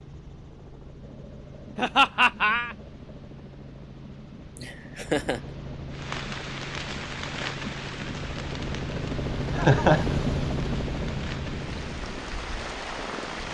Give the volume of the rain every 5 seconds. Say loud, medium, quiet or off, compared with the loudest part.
off, loud, loud.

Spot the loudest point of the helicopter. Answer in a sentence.
The loudest moment of the helicopter is at 10 seconds.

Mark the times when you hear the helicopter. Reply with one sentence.
The helicopter can be heard from 0.0 to 13.4 s.